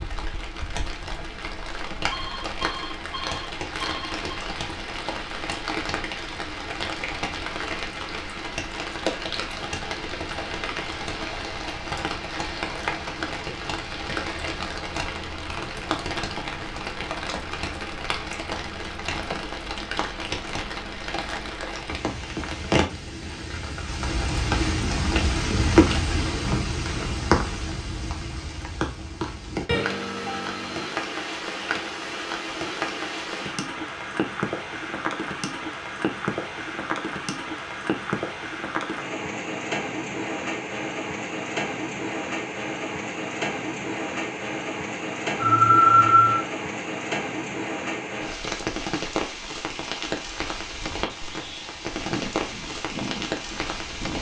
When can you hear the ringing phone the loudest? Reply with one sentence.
The volume of the ringing phone peaks at 46 seconds.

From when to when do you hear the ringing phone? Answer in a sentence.
You can hear the ringing phone from 2.1 to 4.2 s, from 29.7 to 30.9 s and from 45.4 to 46.4 s.